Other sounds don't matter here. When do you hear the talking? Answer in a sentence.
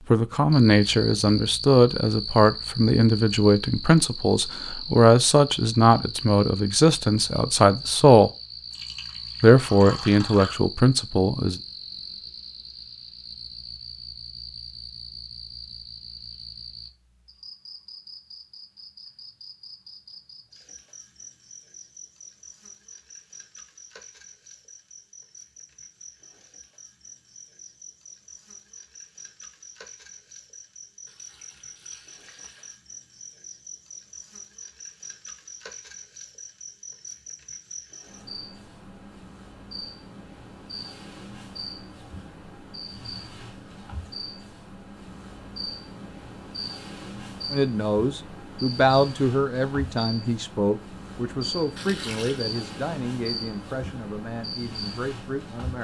You can hear the talking from 0.1 to 8.3 s, from 9.4 to 11.6 s and from 47.5 to 55.7 s.